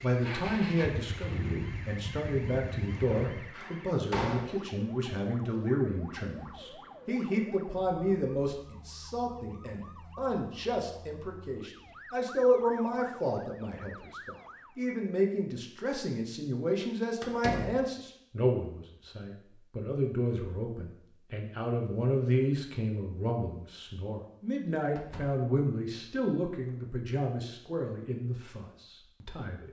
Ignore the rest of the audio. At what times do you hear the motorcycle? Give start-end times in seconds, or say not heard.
0.1-3.5.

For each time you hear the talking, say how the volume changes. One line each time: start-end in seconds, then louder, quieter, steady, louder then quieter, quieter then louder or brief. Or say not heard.
0.0-29.6 steady.